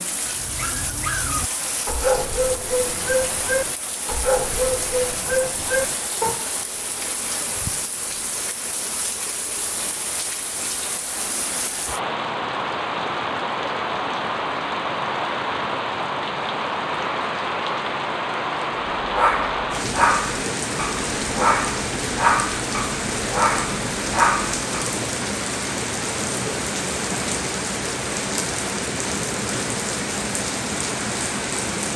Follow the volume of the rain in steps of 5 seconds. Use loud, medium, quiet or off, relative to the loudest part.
medium, medium, loud, loud, loud, loud, loud.